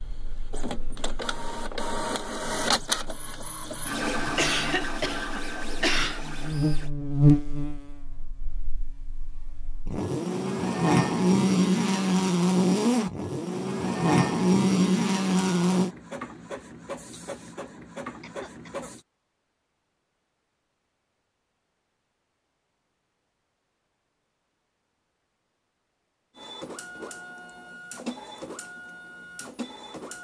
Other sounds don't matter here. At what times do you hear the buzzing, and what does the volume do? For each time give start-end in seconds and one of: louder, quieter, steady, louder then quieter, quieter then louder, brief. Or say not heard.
0.0-15.9 louder.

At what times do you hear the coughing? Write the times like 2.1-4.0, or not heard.
4.2-6.2, 18.2-18.9.